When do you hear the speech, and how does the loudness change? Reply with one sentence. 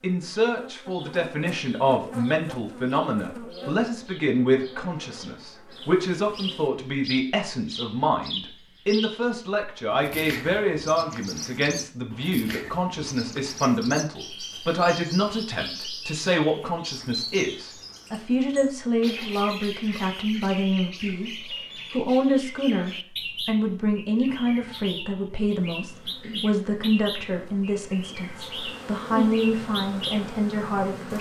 The speech can be heard from 0.0 to 31.1 s, at a steady volume.